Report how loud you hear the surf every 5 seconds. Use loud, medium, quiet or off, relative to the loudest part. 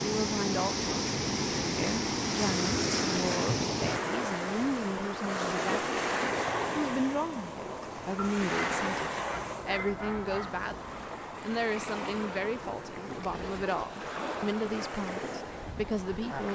loud, loud, medium, medium.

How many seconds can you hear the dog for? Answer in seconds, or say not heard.
3 s.